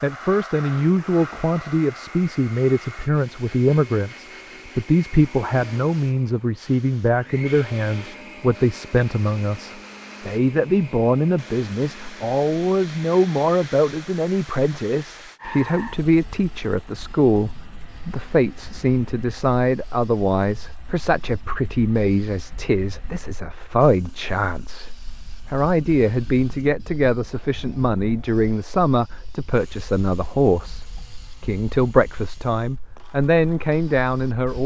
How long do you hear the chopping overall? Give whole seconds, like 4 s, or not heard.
not heard.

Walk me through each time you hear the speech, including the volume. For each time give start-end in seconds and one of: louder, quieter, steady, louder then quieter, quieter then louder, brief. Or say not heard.
0.0-34.6 steady.